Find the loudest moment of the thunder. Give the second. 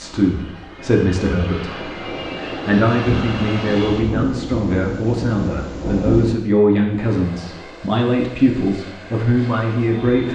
6 s.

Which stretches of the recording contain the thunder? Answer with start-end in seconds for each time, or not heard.
3.0-6.3.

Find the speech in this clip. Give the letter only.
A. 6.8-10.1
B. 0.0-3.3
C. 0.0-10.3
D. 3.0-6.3
C.